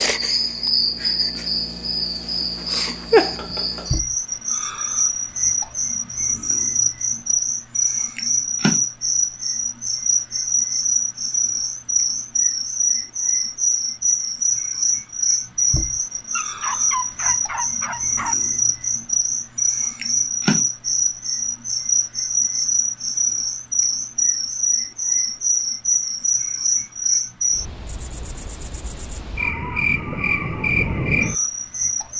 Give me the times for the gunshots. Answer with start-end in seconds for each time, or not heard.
not heard.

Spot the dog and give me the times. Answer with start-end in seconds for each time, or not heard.
16.4-18.4.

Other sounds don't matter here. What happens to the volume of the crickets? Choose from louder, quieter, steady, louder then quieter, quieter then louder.
steady.